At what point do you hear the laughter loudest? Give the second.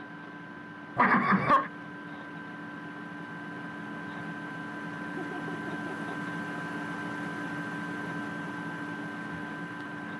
1 s.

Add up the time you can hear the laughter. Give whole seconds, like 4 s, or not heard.
2 s.